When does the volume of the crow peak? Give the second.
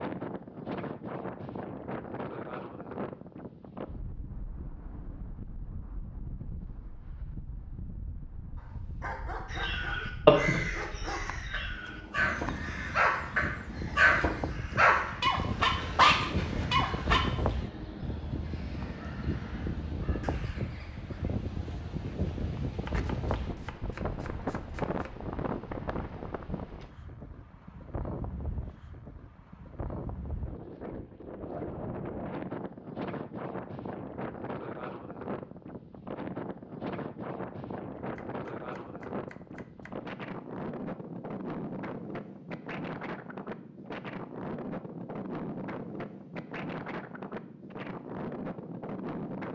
10 s.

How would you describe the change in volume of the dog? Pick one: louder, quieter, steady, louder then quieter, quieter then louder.
louder.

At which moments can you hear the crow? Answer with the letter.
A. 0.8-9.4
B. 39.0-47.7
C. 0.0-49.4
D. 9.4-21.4
D.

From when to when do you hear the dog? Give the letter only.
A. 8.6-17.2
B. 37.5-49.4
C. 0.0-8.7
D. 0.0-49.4
A.